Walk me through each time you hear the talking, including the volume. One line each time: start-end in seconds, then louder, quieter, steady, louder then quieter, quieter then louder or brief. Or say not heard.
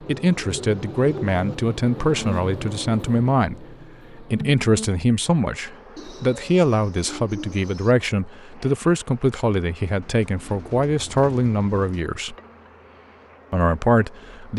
0.1-12.3 steady
13.5-14.5 brief.